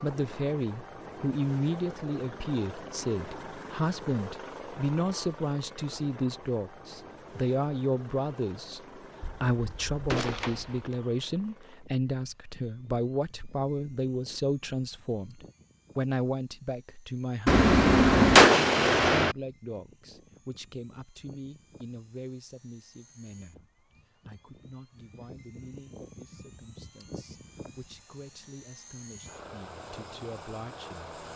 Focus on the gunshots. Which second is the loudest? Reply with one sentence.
The volume of the gunshots peaks at 18 seconds.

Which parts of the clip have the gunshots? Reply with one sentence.
You can hear the gunshots from 9.2 to 10.9 s and from 17.4 to 19.4 s.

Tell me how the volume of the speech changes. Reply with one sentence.
The loudness of the speech goes down.